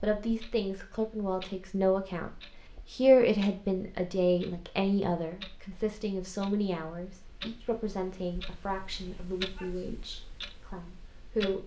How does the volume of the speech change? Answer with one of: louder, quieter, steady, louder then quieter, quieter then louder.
louder then quieter.